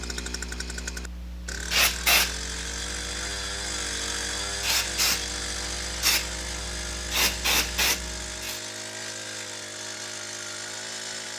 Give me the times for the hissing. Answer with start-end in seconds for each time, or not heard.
0.0-8.6.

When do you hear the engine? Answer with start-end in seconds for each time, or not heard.
0.0-11.3.